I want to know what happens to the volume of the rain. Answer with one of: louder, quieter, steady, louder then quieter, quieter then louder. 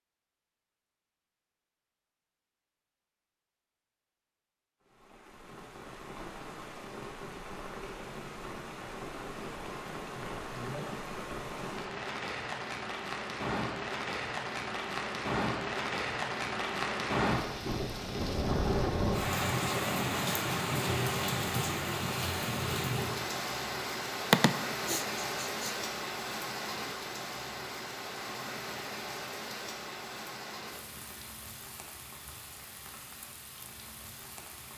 louder then quieter.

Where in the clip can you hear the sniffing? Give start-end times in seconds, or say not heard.
24.3-25.6.